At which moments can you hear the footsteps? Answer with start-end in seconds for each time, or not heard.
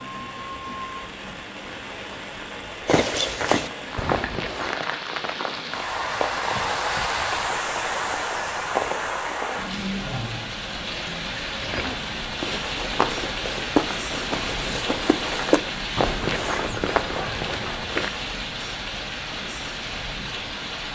2.9-4.8, 11.6-18.1.